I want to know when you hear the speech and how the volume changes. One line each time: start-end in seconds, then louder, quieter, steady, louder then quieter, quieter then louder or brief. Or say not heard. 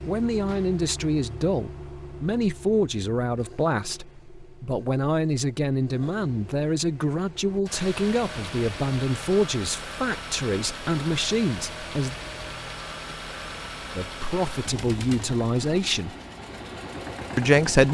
0.1-12.2 steady
13.9-16.1 brief
17.4-17.8 brief.